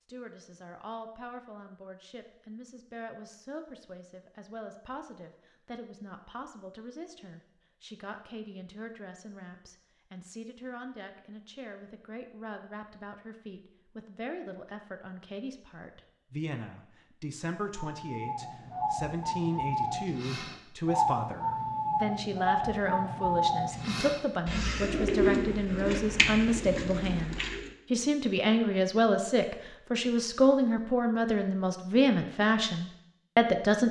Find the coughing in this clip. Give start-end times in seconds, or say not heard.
not heard.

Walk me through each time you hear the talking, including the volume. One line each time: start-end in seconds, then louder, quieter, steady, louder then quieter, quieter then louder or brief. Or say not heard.
0.1-33.8 louder.